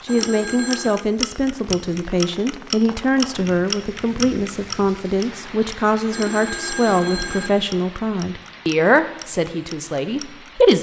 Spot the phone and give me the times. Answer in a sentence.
You can hear the phone from 0.1 to 1.0 s and from 6.1 to 7.5 s.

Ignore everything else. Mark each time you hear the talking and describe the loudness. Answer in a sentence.
The talking can be heard from 0.0 to 10.7 s, at a steady volume.